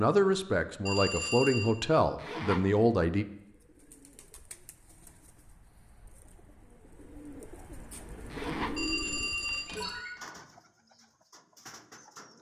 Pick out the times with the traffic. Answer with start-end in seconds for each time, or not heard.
not heard.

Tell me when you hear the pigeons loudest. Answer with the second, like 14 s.
9 s.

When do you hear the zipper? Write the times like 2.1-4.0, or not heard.
2.1-2.6, 8.3-9.7.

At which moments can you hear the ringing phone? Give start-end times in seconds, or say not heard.
0.8-1.8, 8.8-10.2.